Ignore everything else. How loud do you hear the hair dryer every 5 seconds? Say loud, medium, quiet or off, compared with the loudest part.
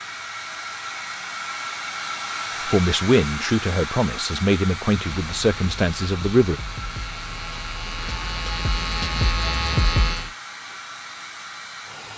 loud, medium, medium.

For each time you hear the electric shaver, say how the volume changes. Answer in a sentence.
The electric shaver can be heard from 5.0 to 10.3 s, getting louder.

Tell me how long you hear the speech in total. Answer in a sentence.
You can hear the speech for 4 seconds altogether.